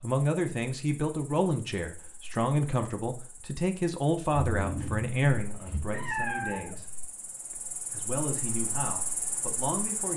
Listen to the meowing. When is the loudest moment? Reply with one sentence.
The loudest moment of the meowing is at 6 seconds.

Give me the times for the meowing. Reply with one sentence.
The meowing can be heard from 4.5 to 7.0 s.